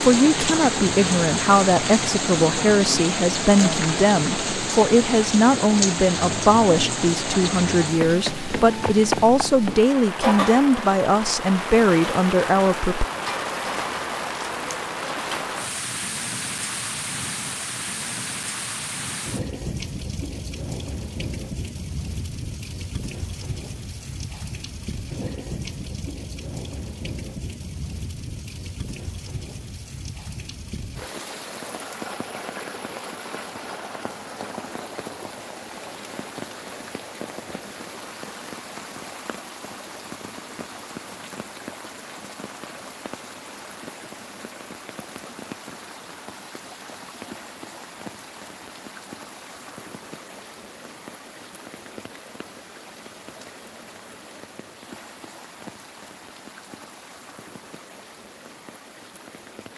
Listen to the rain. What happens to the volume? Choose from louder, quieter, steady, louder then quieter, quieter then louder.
quieter.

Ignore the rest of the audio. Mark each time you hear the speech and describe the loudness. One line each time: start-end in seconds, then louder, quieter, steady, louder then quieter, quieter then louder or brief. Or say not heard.
0.0-13.1 steady.